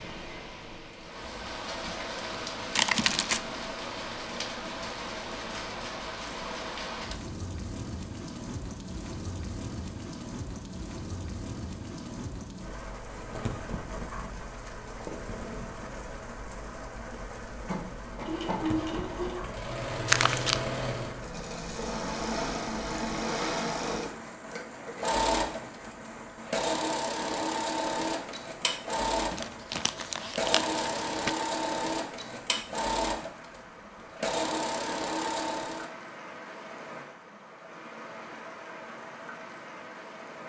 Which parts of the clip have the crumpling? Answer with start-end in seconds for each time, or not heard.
2.8-3.4, 20.1-20.6, 29.3-31.3.